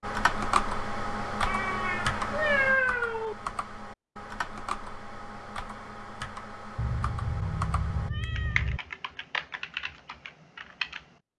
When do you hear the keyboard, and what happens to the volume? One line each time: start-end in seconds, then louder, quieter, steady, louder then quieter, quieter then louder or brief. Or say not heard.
0.0-11.2 quieter.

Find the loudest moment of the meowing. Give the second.
3 s.